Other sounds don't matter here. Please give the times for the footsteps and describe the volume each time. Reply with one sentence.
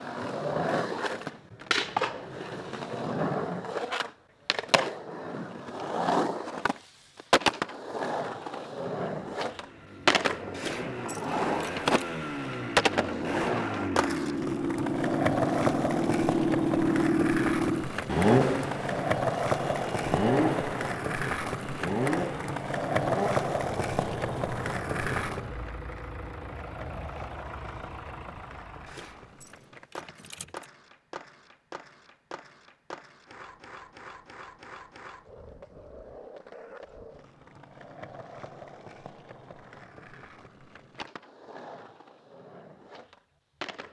The footsteps can't be heard in this clip.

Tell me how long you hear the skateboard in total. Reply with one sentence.
The skateboard can be heard for 44 seconds in total.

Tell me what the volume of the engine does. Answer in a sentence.
The volume of the engine goes up, then down.